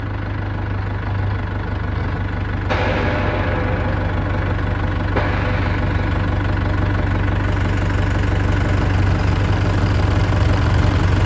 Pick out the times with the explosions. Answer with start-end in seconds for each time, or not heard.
2.7-6.2.